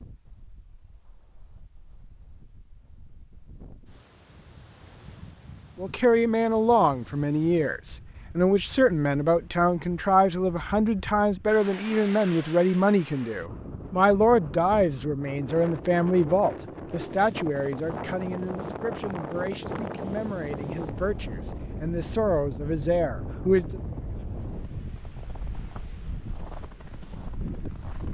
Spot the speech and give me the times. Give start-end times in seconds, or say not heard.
5.8-23.8.